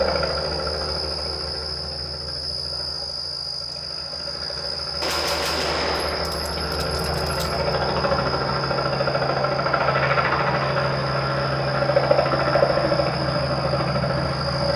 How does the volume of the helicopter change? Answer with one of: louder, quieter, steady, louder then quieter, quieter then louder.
louder.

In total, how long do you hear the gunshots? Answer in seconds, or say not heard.
3 s.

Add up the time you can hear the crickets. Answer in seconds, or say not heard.
15 s.